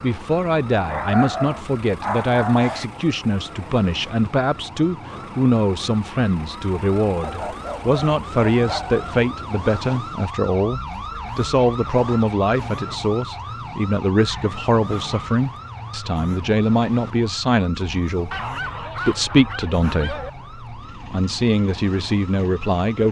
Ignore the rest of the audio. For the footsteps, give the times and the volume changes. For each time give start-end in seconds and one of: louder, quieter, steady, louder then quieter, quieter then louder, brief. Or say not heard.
not heard.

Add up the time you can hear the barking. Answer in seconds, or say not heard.
7 s.